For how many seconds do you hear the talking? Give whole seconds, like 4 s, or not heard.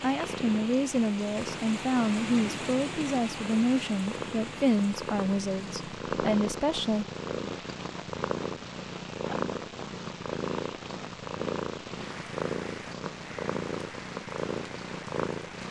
7 s.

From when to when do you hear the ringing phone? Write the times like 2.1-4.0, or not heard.
not heard.